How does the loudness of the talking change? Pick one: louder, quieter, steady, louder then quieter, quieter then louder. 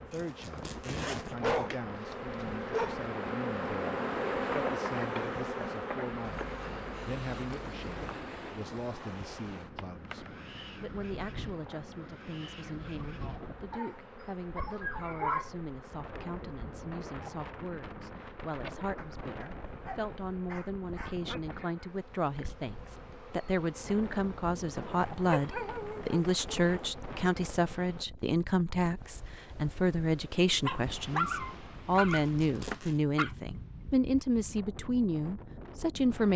louder.